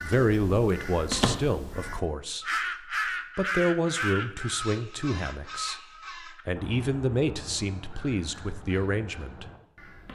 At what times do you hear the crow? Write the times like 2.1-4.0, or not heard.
0.0-10.0.